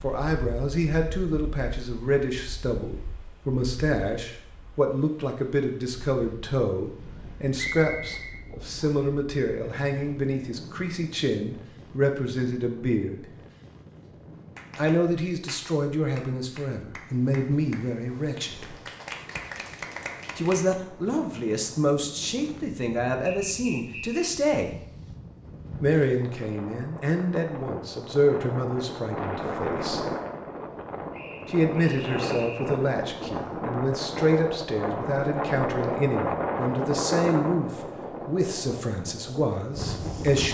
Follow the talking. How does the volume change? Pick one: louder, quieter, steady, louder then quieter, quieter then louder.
steady.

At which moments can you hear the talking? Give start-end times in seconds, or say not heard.
0.0-13.2, 14.8-18.8, 20.4-24.7, 25.8-30.1, 31.4-40.4.